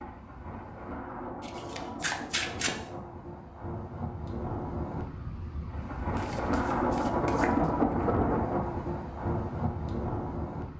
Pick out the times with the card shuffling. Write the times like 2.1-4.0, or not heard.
1.4-2.8, 6.1-7.7.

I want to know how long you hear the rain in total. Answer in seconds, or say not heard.
11 s.